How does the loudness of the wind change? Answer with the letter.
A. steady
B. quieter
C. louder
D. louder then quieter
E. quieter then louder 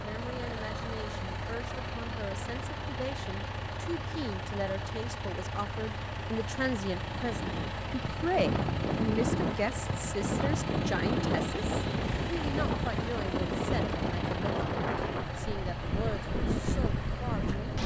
A.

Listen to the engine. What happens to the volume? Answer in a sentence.
The loudness of the engine stays about the same.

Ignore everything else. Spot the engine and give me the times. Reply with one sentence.
You can hear the engine from 0.0 to 17.8 s.